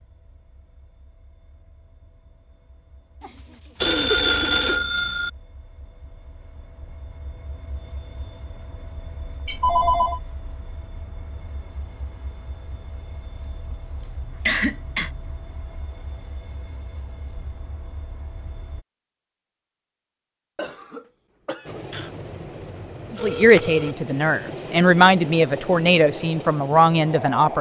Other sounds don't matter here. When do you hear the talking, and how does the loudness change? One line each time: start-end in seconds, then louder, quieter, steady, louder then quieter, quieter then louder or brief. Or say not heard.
23.1-27.5 steady.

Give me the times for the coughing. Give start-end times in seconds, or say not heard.
3.2-4.8, 14.0-15.1, 20.6-21.9.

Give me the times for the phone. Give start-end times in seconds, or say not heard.
3.8-5.3, 9.4-10.2, 21.9-23.9.